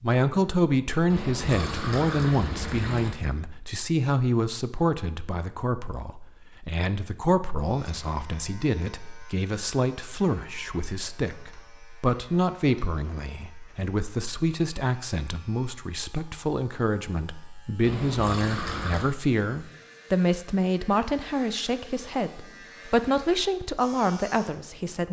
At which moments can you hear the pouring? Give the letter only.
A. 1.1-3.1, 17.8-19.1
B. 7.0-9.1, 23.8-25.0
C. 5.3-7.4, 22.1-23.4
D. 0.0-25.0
A.